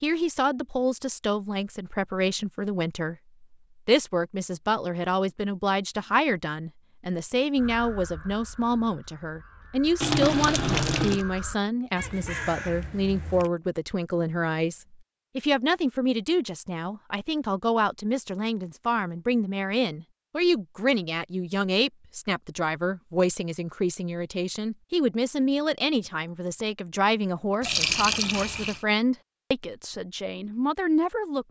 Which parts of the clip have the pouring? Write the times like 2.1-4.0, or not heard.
10.0-11.2, 27.6-28.8.